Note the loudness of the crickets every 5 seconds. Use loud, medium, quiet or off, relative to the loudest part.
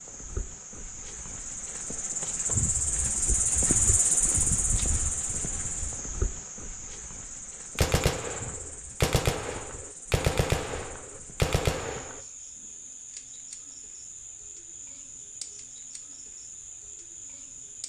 loud, medium, quiet, quiet.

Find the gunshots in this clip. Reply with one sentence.
You can hear the gunshots from 7.8 to 12.2 s.